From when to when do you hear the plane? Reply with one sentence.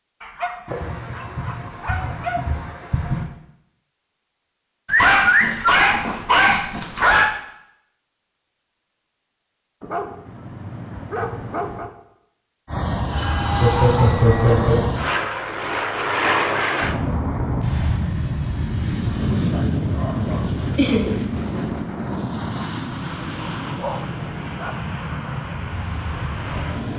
You can hear the plane from 12.7 to 26.9 s.